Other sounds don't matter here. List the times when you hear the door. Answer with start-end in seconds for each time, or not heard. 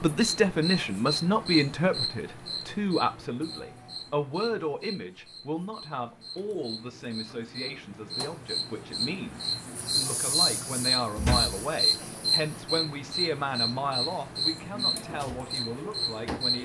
11.2-12.1.